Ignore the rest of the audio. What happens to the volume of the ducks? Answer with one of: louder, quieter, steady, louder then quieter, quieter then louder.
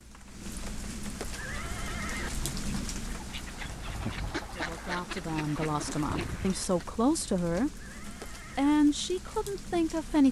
louder.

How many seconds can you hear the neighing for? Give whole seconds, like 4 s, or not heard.
2 s.